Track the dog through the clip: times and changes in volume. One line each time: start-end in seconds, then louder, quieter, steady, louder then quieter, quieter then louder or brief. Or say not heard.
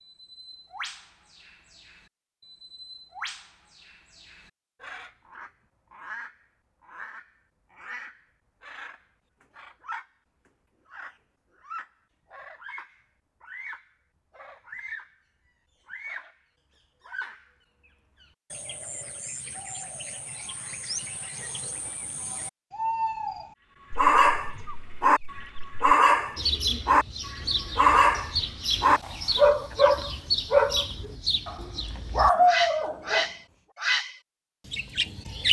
23.9-33.2 steady.